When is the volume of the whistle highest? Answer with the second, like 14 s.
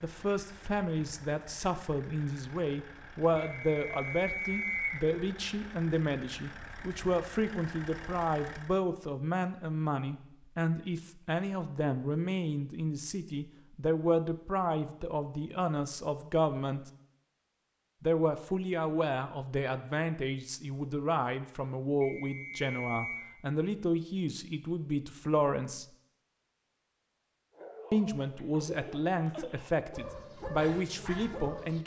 5 s.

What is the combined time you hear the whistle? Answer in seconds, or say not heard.
3 s.